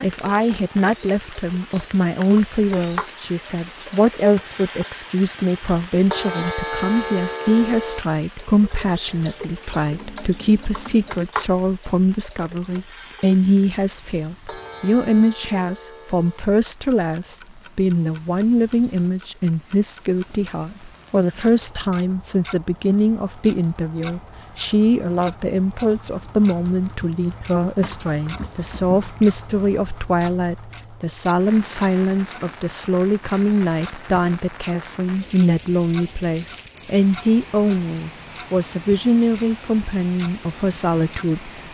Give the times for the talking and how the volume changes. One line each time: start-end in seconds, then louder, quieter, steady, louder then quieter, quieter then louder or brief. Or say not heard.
0.0-41.6 steady.